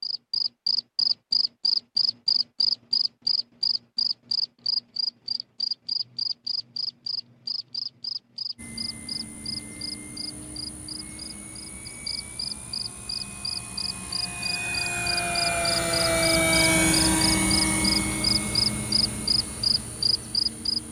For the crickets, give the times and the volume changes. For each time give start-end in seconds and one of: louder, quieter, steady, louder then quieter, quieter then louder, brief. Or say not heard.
0.0-20.8 quieter then louder.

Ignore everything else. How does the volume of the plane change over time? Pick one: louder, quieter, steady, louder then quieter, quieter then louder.
louder then quieter.